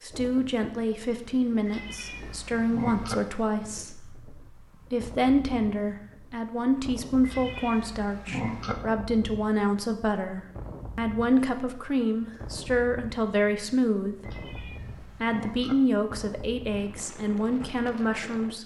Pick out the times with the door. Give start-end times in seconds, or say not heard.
not heard.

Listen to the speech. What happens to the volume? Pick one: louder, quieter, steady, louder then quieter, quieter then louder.
steady.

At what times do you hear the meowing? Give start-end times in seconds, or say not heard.
1.6-3.1, 7.2-8.8, 14.2-15.8.